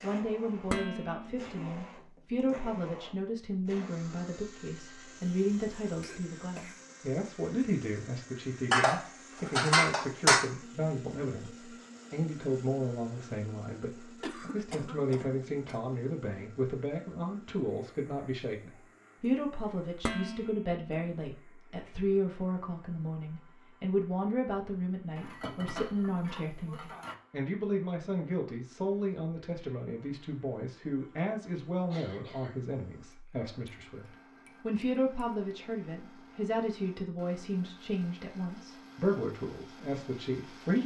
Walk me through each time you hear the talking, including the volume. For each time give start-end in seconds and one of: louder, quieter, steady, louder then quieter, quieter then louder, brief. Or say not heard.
0.0-40.8 steady.